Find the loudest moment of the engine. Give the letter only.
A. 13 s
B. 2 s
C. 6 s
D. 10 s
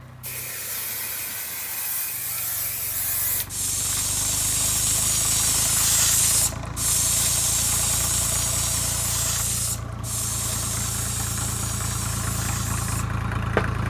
A.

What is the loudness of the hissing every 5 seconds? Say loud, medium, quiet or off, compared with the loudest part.
medium, loud, medium.